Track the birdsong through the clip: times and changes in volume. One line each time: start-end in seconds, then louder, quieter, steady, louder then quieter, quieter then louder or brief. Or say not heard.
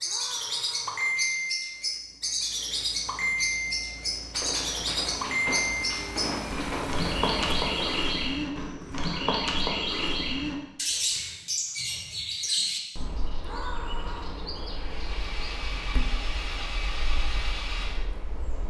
0.0-18.6 quieter.